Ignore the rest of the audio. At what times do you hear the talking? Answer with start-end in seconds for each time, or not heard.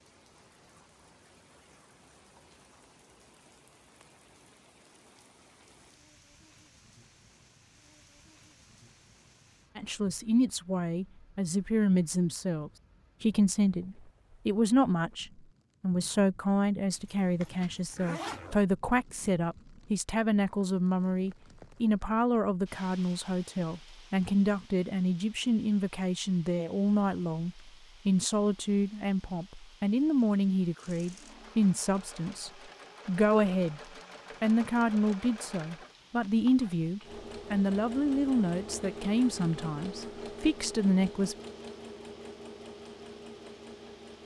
9.8-33.8, 34.4-41.4.